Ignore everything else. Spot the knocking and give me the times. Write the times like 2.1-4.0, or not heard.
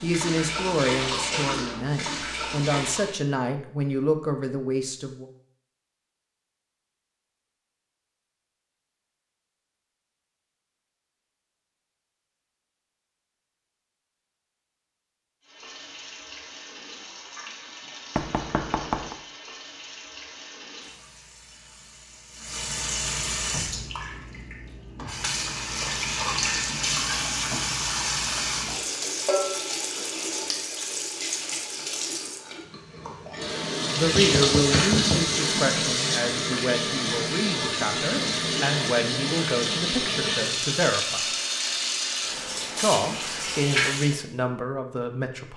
18.1-19.1, 34.0-35.3.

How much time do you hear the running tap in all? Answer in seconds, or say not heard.
32 s.